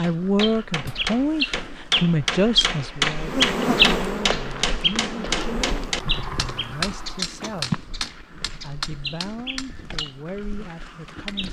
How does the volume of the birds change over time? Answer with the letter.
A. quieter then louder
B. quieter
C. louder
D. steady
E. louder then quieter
E.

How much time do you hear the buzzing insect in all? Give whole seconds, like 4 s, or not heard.
3 s.